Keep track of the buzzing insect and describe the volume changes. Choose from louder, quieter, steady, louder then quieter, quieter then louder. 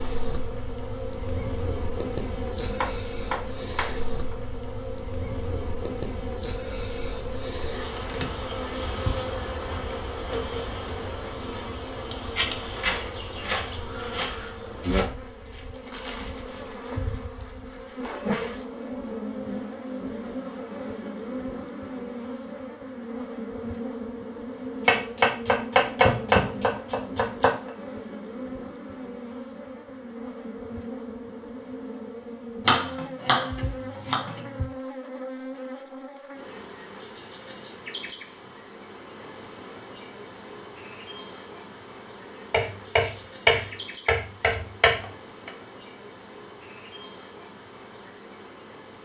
quieter.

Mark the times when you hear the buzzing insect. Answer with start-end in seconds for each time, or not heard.
0.0-48.9.